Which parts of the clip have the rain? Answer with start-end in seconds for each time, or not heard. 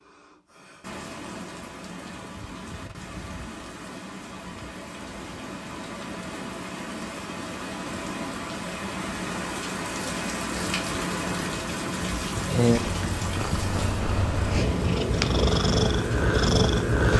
0.0-17.1.